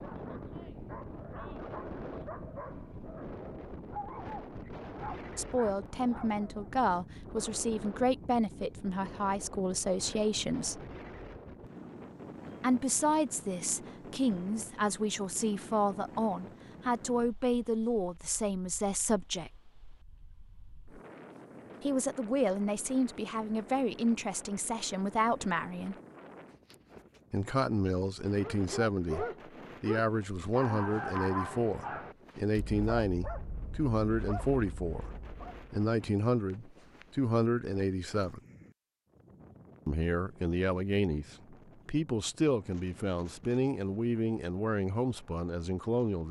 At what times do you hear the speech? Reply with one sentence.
The speech can be heard from 5.3 to 10.8 s, from 12.6 to 19.5 s, from 21.8 to 25.9 s, from 27.3 to 35.0 s, from 35.7 to 38.4 s and from 39.9 to 46.2 s.